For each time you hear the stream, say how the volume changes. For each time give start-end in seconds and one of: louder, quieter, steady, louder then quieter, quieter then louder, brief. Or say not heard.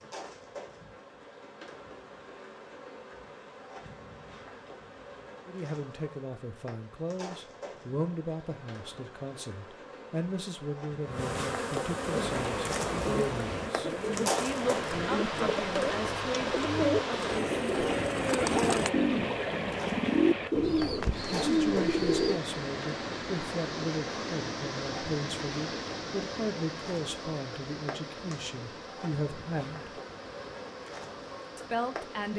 12.1-32.3 quieter.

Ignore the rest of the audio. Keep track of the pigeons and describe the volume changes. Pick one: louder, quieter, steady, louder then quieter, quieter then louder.
louder.